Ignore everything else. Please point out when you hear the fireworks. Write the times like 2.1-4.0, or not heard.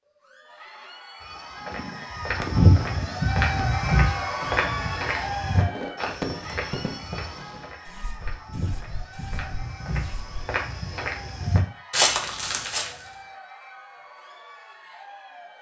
1.6-10.5.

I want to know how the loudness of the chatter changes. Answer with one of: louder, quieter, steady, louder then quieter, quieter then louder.
louder then quieter.